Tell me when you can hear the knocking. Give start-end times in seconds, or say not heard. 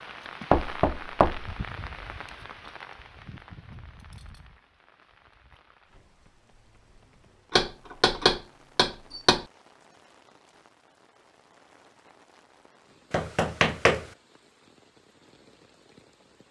0.5-1.6, 7.5-9.4, 13.1-14.1.